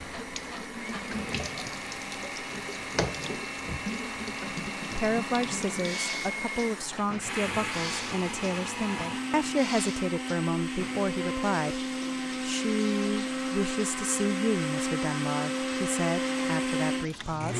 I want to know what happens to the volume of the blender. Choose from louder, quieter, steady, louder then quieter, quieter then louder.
louder.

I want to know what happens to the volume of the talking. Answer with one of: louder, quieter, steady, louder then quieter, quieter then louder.
steady.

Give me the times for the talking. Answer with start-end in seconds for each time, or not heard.
5.0-17.5.